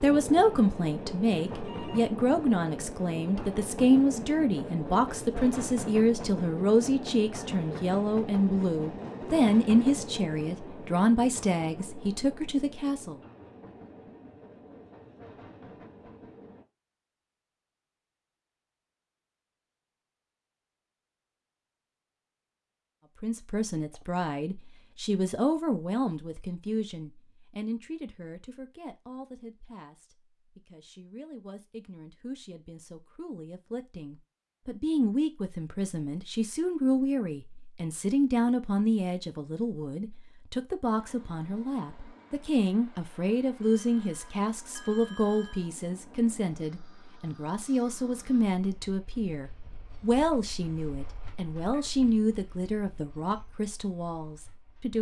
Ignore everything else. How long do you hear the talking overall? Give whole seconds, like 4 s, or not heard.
45 s.